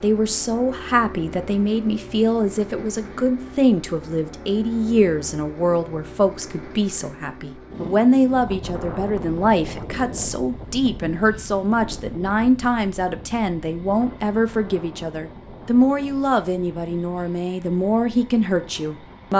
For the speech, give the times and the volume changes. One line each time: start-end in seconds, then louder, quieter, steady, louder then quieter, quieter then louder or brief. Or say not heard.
0.0-19.3 steady.